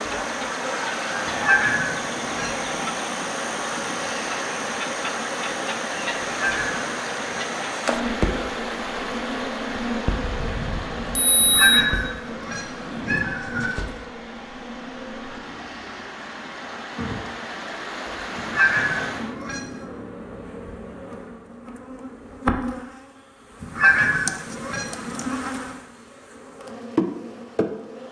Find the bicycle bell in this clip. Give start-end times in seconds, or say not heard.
10.2-11.7.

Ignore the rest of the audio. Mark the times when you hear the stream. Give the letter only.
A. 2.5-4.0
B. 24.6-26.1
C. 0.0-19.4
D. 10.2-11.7
C.